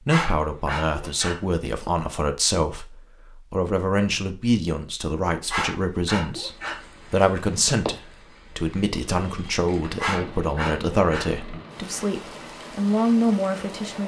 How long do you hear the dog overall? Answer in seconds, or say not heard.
5 s.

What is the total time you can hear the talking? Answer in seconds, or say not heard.
14 s.